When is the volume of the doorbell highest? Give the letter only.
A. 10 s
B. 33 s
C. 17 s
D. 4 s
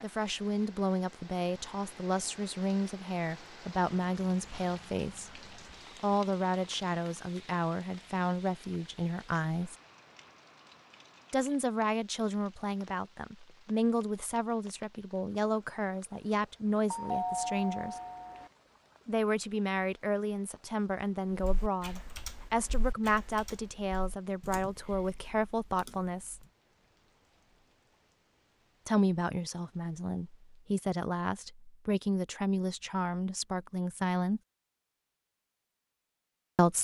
C.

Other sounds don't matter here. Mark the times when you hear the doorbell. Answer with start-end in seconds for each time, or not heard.
16.9-18.5.